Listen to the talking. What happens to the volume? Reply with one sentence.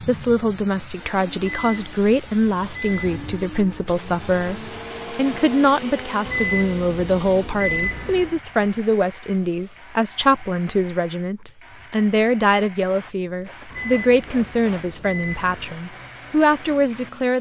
The loudness of the talking stays about the same.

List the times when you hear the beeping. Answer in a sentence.
You can hear the beeping from 1.4 to 4.0 s, from 6.2 to 8.3 s and from 13.7 to 15.8 s.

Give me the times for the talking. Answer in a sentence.
You can hear the talking from 0.1 to 17.3 s.